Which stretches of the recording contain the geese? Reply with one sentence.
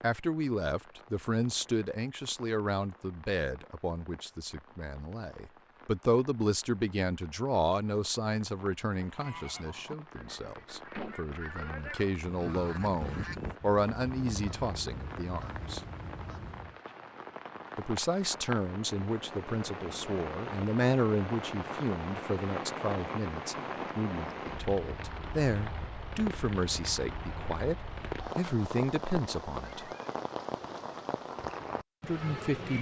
You can hear the geese from 9.1 to 16.8 s.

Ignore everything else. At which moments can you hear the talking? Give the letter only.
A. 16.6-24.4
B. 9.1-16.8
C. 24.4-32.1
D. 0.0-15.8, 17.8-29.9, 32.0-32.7
D.